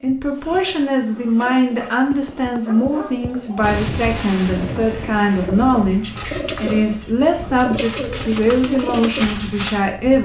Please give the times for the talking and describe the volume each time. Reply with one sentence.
You can hear the talking from 0.0 to 10.1 s, at a steady volume.